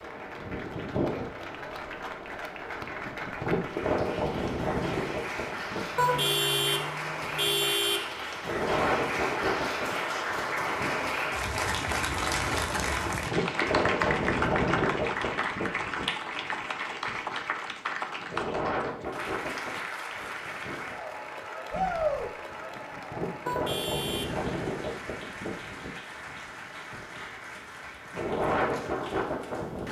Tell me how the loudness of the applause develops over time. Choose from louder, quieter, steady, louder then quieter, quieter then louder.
louder then quieter.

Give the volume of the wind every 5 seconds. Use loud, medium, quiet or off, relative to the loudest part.
loud, loud, loud, medium, medium, loud.